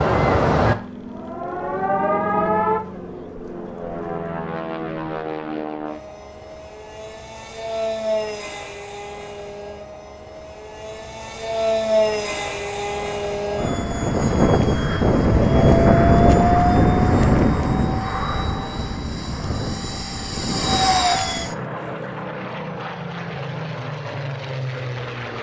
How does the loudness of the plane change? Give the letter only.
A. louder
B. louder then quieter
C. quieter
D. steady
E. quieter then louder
B.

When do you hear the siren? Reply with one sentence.
The siren can be heard from 0.0 to 2.8 s.